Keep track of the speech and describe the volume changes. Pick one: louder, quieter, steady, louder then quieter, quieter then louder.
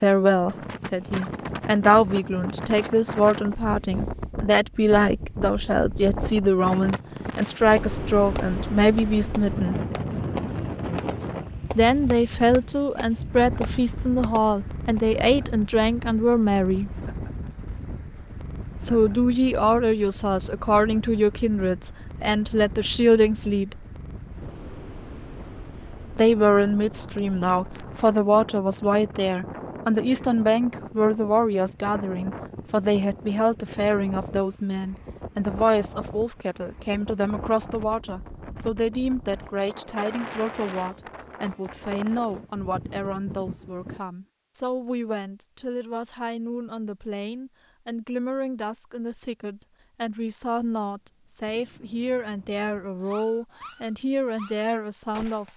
quieter.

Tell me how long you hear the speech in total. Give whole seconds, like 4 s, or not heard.
49 s.